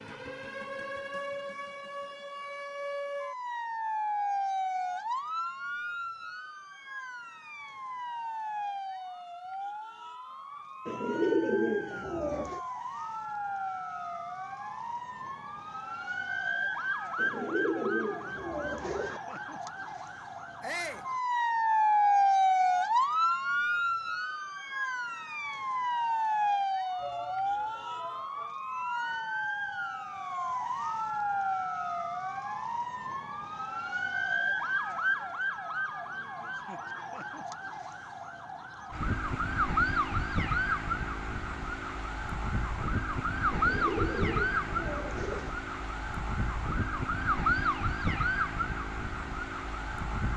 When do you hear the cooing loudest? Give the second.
11 s.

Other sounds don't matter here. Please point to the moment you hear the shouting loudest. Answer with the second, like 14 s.
21 s.